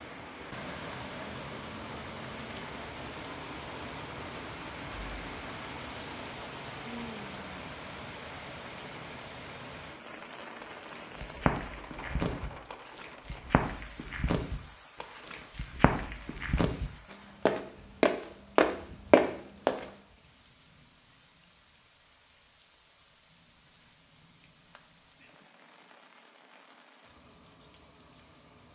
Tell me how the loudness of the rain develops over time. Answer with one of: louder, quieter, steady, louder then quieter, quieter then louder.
quieter.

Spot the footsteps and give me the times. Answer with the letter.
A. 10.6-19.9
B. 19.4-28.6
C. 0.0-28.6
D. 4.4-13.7
A.